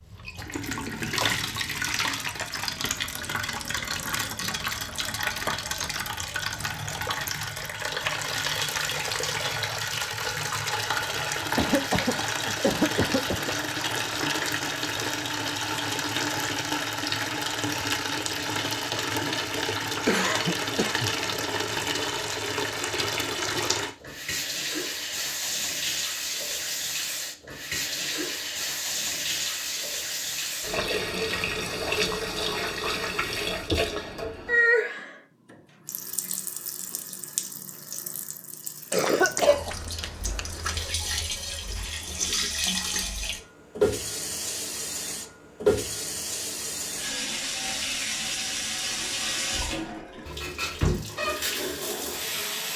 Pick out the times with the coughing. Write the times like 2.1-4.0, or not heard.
11.6-13.5, 20.1-21.1, 38.9-41.0.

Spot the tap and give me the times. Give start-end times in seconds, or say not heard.
0.0-52.7.